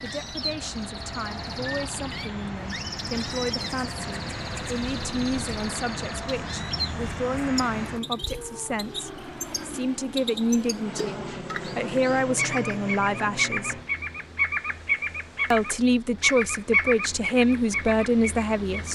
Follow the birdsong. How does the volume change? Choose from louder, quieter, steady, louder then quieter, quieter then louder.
louder.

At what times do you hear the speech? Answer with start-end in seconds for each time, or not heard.
0.0-13.8, 15.5-18.8.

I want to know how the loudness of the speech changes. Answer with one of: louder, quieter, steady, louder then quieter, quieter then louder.
louder.